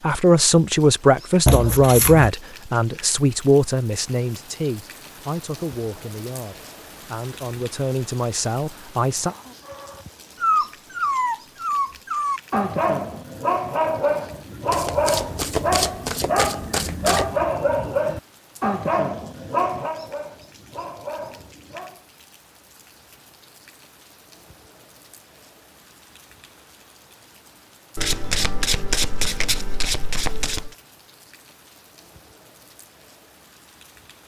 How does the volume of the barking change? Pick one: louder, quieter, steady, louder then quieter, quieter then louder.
quieter.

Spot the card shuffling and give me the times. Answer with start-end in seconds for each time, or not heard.
1.4-2.3, 14.7-17.4, 27.9-30.8.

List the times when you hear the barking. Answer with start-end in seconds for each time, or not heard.
9.7-22.1.